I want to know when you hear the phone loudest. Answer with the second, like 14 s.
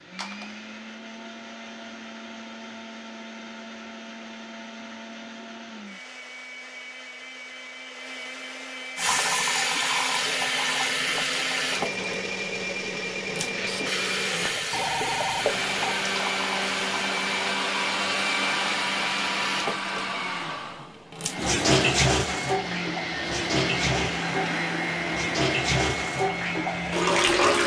15 s.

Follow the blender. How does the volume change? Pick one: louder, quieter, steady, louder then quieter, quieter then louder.
louder.